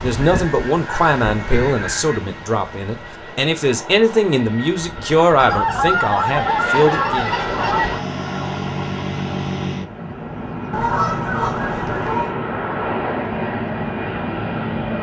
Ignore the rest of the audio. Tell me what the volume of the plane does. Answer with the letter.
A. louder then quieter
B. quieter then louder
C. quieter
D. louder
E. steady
D.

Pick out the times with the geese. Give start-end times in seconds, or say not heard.
0.2-2.2, 5.3-8.1, 10.7-12.3.